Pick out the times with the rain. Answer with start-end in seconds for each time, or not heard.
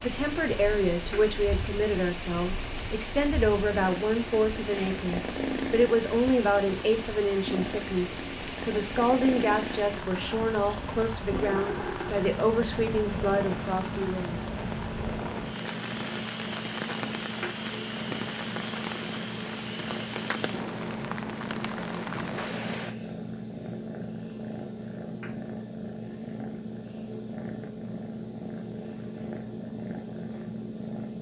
0.0-22.9.